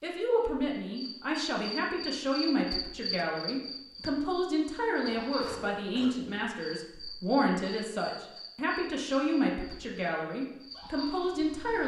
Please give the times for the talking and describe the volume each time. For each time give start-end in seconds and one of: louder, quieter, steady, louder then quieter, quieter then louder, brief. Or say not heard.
0.0-11.8 steady.